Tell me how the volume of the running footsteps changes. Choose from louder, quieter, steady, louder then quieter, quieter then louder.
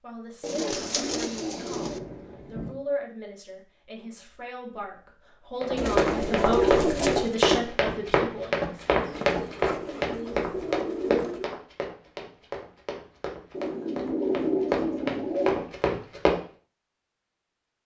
quieter then louder.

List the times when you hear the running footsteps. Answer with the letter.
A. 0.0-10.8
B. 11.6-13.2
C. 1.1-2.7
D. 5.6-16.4
D.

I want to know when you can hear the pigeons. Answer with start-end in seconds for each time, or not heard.
0.4-2.0, 5.8-7.3, 9.0-11.5, 13.5-15.6.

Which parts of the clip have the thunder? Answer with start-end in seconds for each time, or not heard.
1.1-2.7.